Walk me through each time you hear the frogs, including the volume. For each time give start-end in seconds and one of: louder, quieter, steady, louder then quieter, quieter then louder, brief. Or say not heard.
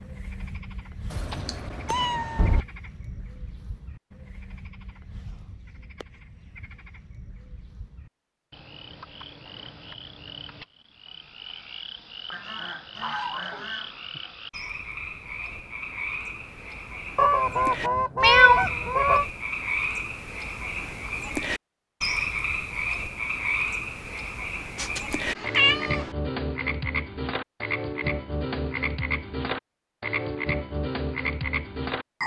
0.0-32.2 louder.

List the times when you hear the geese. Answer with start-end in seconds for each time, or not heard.
12.3-13.9, 17.1-19.2.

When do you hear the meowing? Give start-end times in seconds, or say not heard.
1.1-2.6, 18.2-18.6, 24.8-26.1.